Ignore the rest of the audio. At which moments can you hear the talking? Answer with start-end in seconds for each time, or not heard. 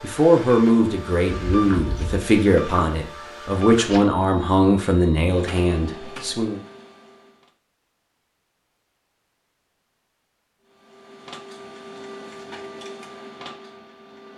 0.0-6.6.